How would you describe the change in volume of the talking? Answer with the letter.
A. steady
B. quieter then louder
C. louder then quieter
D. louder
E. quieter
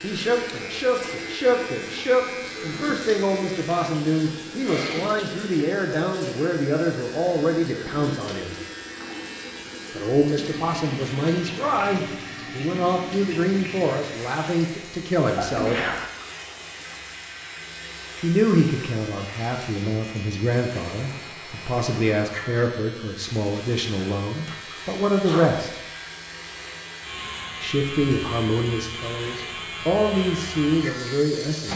A.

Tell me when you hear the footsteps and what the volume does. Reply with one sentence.
You can't hear the footsteps here.